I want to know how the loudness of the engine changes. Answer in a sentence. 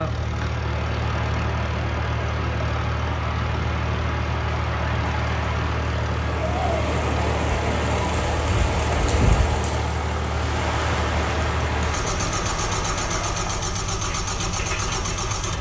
The loudness of the engine stays about the same.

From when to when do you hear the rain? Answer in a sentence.
The rain can be heard from 0.1 to 15.5 s.